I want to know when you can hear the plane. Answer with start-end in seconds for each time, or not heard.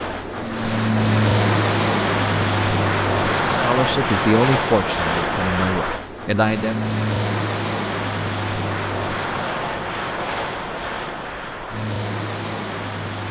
0.0-13.2.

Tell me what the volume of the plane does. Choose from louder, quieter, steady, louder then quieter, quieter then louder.
quieter.